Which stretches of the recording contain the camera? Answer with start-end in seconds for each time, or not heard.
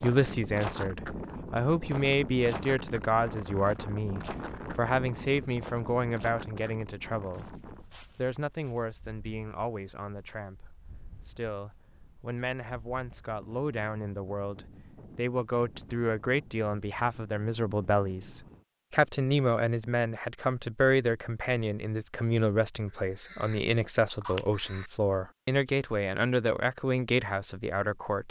22.9-24.9.